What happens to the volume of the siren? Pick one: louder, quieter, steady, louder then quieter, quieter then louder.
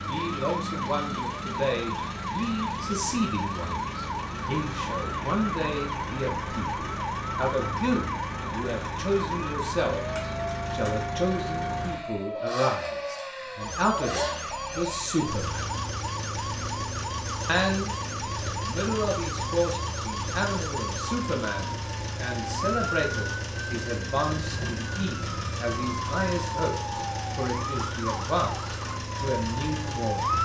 steady.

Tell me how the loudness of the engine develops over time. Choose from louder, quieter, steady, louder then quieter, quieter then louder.
steady.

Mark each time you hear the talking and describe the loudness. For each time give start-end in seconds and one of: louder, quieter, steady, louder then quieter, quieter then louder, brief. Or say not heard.
0.1-15.8 steady
17.4-30.3 steady.